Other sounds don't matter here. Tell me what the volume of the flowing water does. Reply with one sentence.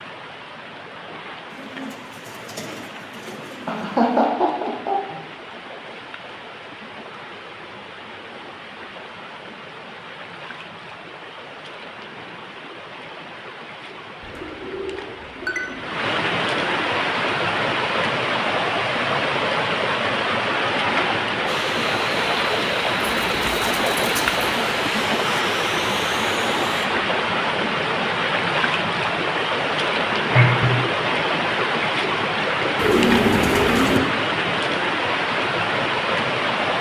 The volume of the flowing water goes up.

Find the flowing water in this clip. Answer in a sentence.
The flowing water can be heard from 0.0 to 36.7 s.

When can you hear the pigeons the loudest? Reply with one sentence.
The volume of the pigeons peaks at 33 seconds.